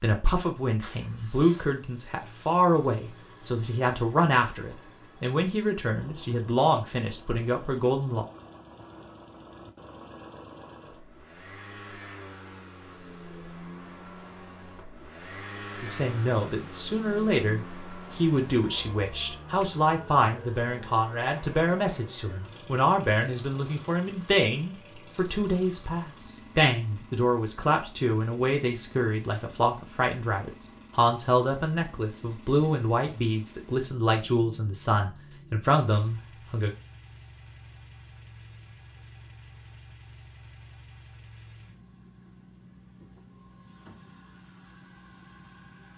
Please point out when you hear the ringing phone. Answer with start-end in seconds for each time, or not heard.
not heard.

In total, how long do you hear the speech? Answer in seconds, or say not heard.
29 s.